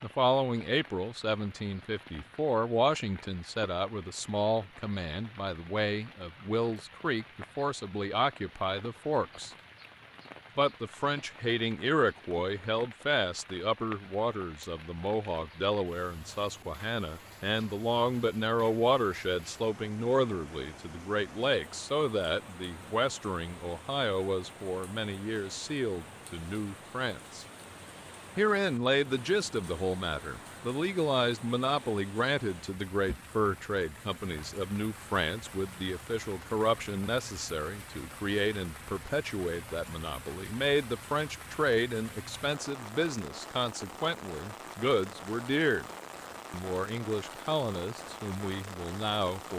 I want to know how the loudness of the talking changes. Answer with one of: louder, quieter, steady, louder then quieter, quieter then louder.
steady.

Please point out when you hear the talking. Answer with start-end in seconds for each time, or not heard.
0.0-9.5, 10.6-27.4, 28.4-45.9, 46.5-49.5.